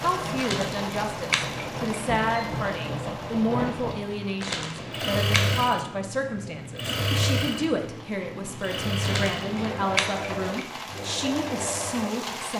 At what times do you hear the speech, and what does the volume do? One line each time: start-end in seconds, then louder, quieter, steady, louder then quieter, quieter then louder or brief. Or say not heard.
0.0-12.5 steady.